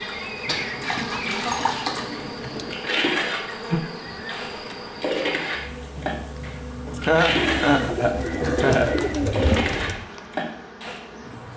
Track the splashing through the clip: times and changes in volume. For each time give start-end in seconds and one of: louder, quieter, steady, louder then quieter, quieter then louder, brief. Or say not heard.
0.1-11.0 steady.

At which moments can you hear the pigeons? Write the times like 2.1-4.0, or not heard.
0.8-2.8, 7.4-10.1.